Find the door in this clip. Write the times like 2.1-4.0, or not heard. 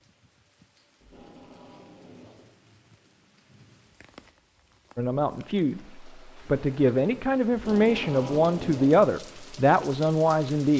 not heard.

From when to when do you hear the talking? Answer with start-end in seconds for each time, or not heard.
5.0-10.7.